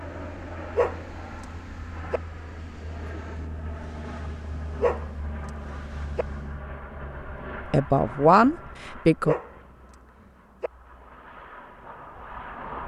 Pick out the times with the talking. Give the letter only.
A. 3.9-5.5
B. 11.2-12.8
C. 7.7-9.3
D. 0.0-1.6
C.